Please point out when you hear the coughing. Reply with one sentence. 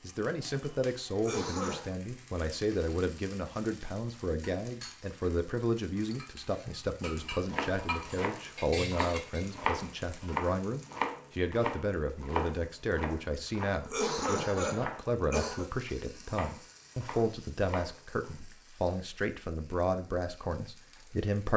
You can hear the coughing from 1.1 to 1.9 s and from 13.8 to 15.7 s.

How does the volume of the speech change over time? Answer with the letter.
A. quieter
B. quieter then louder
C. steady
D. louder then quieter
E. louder
C.